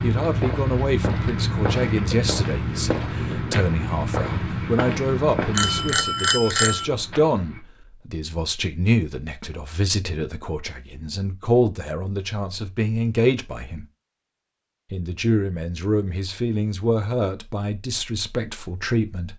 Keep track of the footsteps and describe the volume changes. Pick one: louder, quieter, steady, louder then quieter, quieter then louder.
quieter.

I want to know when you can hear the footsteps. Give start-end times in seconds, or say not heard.
0.0-7.6.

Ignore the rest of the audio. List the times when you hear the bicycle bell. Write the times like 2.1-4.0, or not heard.
5.5-6.8.